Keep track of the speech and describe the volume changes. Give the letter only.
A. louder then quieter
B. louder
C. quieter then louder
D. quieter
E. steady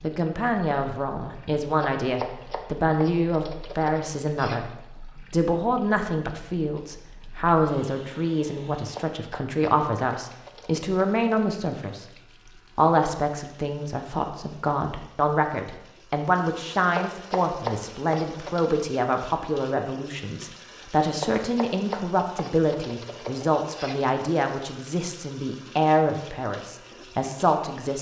E.